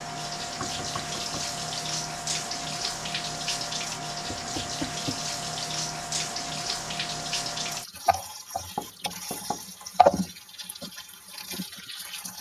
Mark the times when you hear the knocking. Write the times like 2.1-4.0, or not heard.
0.6-1.5, 4.2-5.3, 8.8-9.6.